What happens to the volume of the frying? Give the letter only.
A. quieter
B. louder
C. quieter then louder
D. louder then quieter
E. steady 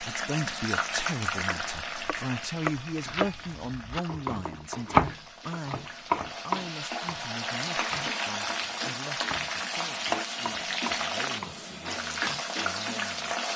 C.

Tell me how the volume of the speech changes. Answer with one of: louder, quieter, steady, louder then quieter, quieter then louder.
quieter.